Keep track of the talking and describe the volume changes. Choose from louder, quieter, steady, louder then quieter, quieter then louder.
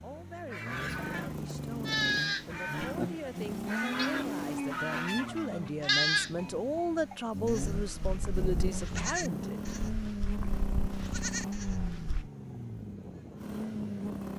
louder.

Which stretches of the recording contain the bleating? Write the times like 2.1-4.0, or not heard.
1.9-12.3.